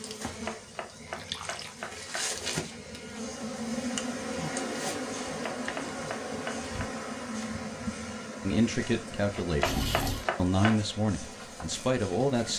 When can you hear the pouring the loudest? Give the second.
10 s.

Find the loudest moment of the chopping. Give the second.
10 s.